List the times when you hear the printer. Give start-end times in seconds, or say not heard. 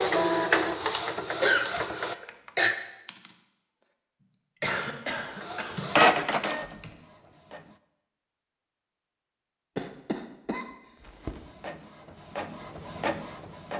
0.0-2.1, 5.2-7.8, 11.2-13.7.